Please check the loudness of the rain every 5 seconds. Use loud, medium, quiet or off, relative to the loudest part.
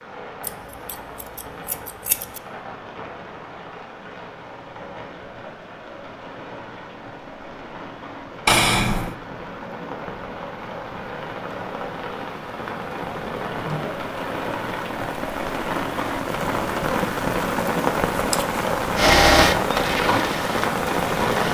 quiet, quiet, medium, loud, loud.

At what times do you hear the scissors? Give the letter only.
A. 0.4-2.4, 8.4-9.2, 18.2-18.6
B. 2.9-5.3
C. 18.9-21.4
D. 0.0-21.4
A.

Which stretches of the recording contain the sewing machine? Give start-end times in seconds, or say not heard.
18.9-21.4.